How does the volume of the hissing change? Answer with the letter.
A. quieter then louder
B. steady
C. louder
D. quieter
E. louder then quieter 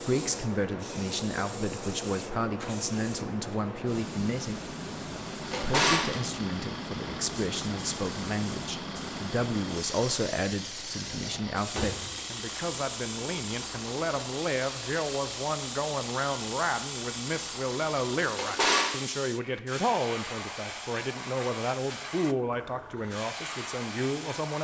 B.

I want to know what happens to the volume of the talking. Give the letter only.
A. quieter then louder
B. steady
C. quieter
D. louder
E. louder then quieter
B.